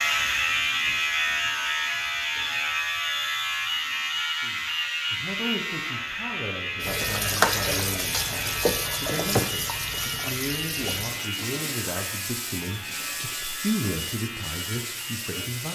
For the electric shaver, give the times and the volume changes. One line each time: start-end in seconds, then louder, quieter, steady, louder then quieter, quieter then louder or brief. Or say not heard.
0.0-15.7 quieter.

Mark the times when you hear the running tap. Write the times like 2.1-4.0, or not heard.
6.8-15.7.